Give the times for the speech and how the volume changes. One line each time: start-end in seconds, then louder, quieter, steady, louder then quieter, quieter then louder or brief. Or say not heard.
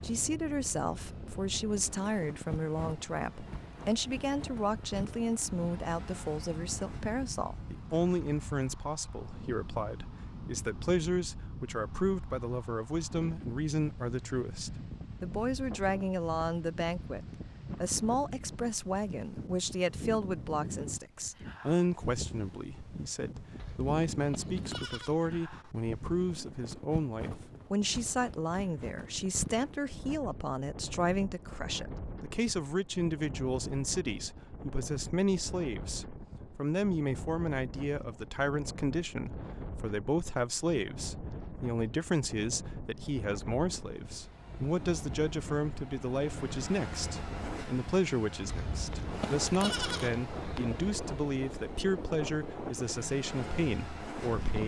0.0-54.6 steady.